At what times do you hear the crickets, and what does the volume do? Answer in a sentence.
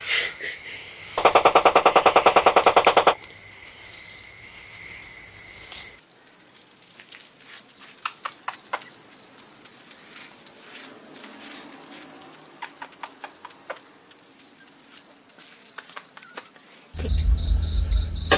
The crickets can be heard from 0.0 to 18.3 s, getting louder then quieter.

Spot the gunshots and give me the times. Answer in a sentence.
You can hear the gunshots from 1.1 to 3.1 s.